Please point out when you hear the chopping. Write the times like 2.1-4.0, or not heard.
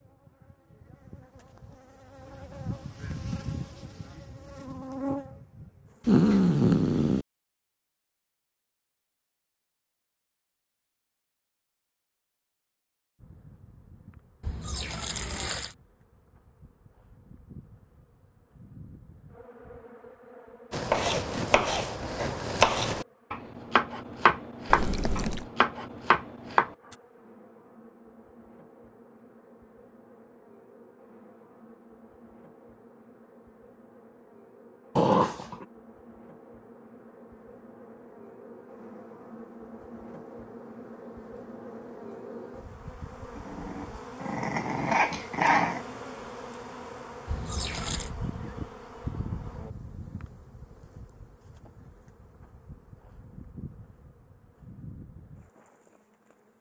20.7-26.9.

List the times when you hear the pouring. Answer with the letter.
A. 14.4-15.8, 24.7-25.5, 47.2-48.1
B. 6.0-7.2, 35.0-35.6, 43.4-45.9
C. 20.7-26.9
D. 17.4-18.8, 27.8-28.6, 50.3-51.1
A.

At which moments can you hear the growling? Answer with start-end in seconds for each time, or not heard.
6.0-7.2, 35.0-35.6, 43.4-45.9.